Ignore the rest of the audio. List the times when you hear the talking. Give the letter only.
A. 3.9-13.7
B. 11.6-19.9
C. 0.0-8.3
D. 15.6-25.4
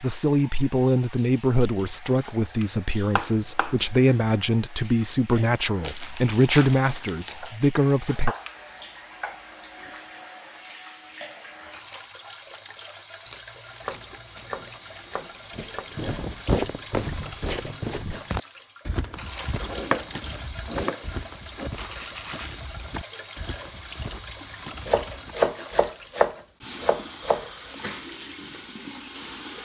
C.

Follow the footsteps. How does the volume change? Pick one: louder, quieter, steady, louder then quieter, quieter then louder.
quieter.